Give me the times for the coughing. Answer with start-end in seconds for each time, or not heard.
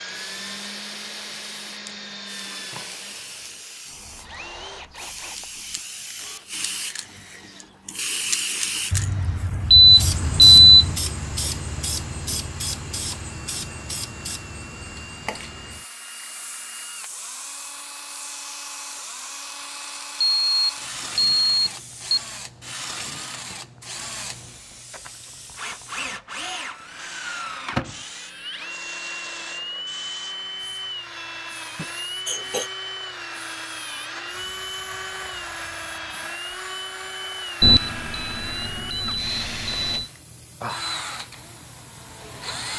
31.8-32.7.